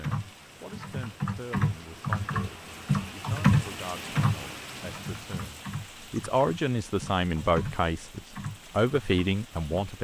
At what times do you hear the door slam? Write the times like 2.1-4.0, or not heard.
not heard.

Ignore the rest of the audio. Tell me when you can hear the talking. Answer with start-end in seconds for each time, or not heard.
0.0-10.0.